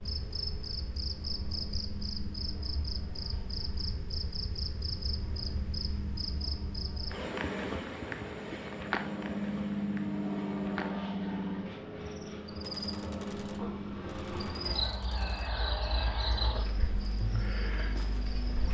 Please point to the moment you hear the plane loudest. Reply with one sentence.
The loudest moment of the plane is at 10 seconds.